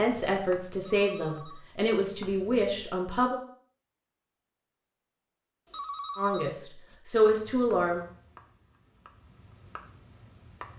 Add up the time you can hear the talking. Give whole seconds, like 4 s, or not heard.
5 s.